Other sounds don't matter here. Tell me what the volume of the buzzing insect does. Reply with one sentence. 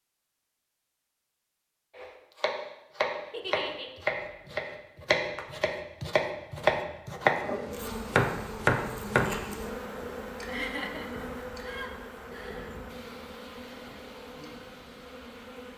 The volume of the buzzing insect goes down.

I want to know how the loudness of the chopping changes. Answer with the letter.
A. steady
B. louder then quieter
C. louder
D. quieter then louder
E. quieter
C.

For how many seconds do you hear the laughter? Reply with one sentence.
You can hear the laughter for 3 seconds altogether.